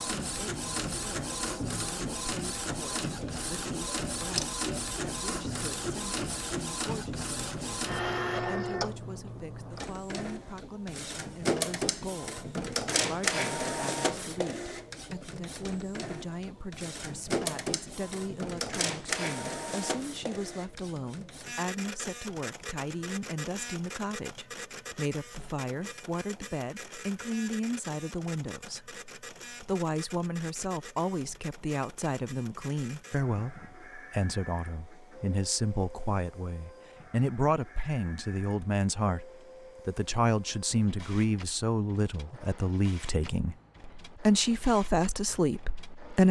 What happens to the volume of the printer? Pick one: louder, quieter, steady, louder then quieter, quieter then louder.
quieter.